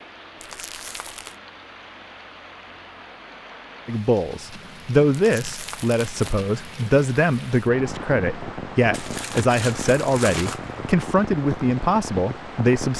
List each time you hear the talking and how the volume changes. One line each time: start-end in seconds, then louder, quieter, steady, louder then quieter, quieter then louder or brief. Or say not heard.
3.9-12.9 steady.